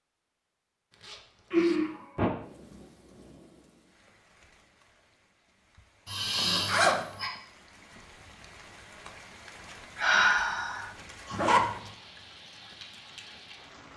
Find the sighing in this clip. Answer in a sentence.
The sighing can be heard from 1.5 to 2.3 s, from 6.0 to 7.3 s and from 9.9 to 11.3 s.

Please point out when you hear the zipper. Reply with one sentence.
The zipper can be heard from 0.9 to 1.8 s, from 6.3 to 7.0 s and from 11.3 to 11.8 s.